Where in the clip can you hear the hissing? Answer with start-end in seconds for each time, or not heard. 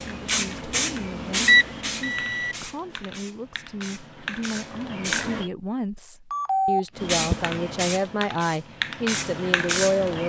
0.0-5.5, 7.0-10.2.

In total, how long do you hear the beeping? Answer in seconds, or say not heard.
2 s.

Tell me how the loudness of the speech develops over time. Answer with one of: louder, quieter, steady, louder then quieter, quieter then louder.
louder.